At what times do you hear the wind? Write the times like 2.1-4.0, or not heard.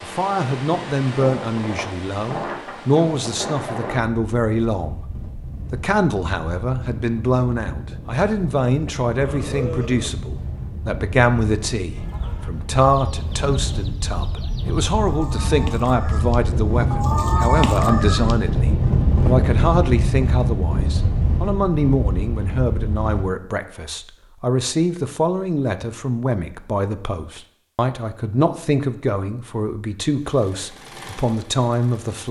0.0-23.2.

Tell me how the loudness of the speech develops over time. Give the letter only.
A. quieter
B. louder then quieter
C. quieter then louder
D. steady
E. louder
D.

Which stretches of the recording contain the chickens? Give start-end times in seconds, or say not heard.
11.8-18.4.